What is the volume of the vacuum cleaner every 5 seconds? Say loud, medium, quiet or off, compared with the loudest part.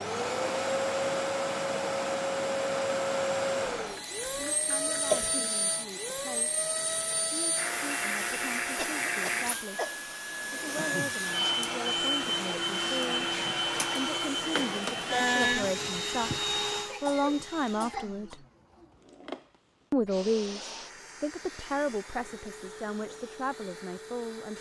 loud, loud, loud, loud, quiet.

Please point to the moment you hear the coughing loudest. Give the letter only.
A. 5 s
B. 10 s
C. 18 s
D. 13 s
A.